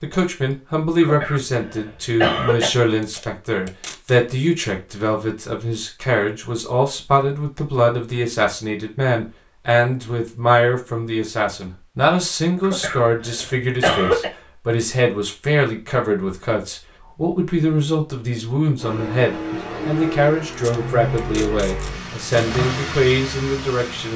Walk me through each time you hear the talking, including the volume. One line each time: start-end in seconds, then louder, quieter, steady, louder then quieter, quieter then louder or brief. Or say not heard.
0.0-24.1 steady.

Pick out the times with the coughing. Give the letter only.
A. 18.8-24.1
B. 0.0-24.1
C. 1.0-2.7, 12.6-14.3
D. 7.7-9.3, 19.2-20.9
C.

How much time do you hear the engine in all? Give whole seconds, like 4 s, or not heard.
5 s.